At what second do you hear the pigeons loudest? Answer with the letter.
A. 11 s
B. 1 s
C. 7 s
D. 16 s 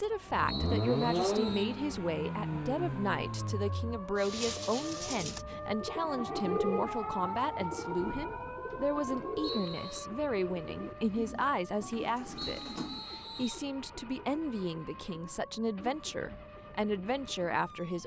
C.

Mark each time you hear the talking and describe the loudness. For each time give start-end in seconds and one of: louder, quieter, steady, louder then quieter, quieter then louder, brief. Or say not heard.
0.0-18.0 steady.